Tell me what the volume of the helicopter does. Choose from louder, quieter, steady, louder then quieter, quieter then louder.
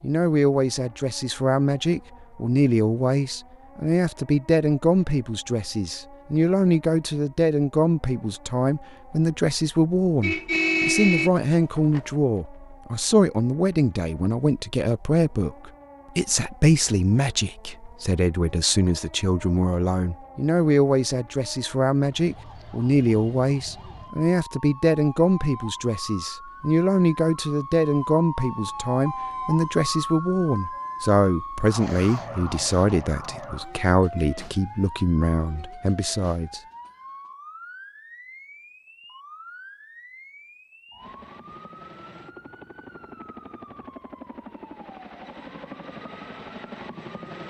louder.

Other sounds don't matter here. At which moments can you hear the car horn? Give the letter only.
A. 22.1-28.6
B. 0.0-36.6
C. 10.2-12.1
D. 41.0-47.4
C.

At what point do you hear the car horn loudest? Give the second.
11 s.